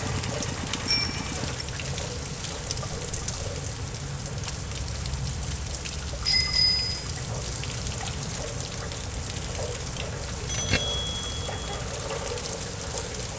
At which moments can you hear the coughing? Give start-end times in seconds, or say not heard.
not heard.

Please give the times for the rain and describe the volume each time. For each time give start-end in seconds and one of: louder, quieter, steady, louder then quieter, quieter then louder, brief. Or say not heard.
0.0-13.3 steady.